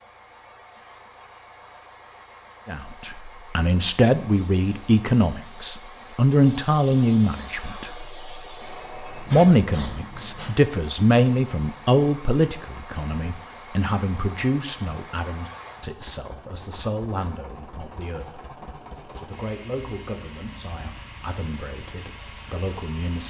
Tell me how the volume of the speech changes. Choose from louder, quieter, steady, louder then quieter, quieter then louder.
quieter.